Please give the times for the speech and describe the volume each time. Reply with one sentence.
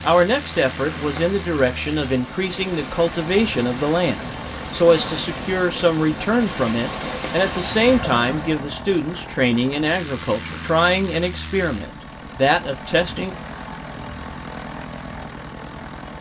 The speech can be heard from 0.0 to 13.3 s, at a steady volume.